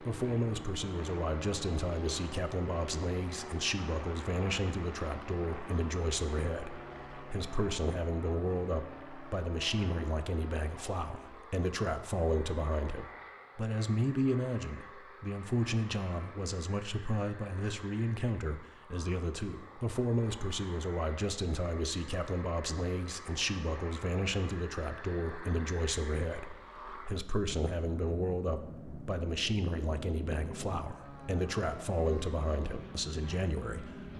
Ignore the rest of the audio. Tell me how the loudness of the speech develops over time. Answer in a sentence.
The loudness of the speech stays about the same.